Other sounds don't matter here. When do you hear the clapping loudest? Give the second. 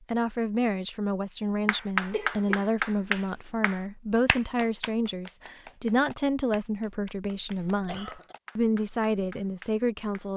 2 s.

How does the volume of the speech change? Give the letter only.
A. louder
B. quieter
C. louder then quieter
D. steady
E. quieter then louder
D.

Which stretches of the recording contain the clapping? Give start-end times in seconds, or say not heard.
1.6-10.2.